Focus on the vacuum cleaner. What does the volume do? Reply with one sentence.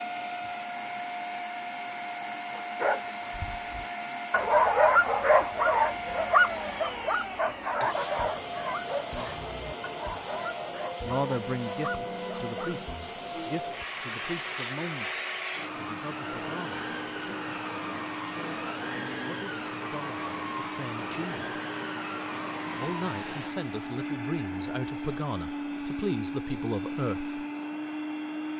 The volume of the vacuum cleaner stays about the same.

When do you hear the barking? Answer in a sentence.
The barking can be heard from 2.5 to 12.8 s.